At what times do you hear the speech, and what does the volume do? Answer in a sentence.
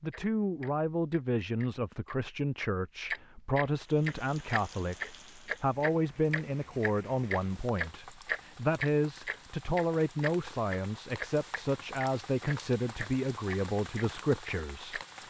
The speech can be heard from 0.0 to 15.2 s, at a steady volume.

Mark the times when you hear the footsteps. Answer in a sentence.
The footsteps can't be heard in this clip.